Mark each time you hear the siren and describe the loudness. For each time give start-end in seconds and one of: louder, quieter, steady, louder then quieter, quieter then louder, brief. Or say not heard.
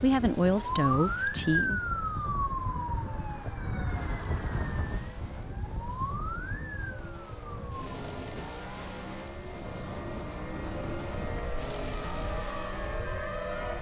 0.0-13.7 quieter then louder.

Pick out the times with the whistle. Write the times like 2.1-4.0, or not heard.
not heard.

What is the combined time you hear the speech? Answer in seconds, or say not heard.
2 s.